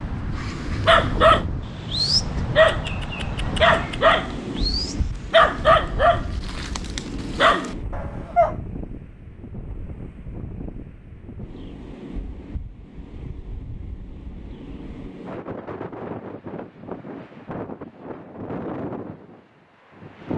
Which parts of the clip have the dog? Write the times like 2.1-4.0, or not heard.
0.3-8.6.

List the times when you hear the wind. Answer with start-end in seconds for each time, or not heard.
0.0-20.3.